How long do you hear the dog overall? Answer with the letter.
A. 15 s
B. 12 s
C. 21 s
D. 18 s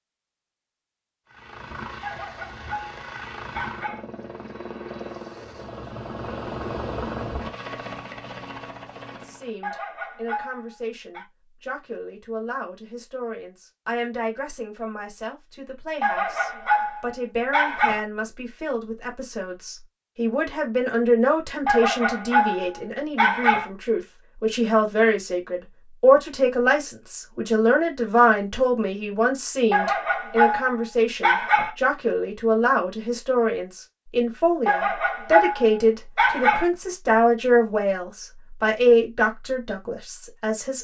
B.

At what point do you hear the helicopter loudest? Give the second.
7 s.